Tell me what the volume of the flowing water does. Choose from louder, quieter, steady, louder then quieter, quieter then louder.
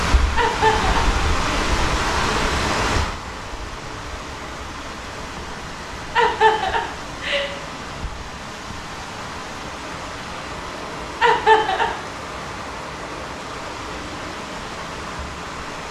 quieter.